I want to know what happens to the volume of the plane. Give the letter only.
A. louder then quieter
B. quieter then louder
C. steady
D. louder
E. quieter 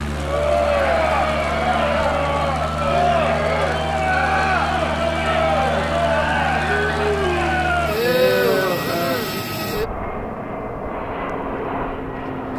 C.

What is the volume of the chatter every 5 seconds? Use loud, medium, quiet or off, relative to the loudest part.
loud, loud, off.